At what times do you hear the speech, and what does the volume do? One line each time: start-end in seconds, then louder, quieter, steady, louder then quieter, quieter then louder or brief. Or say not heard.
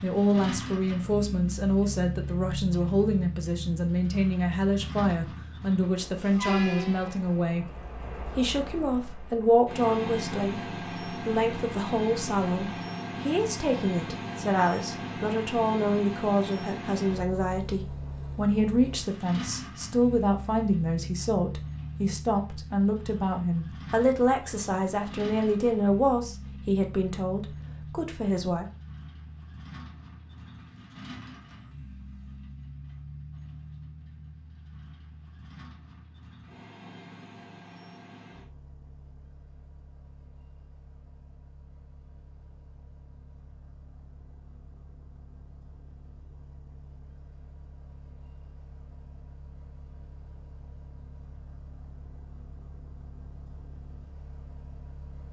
0.0-28.6 steady.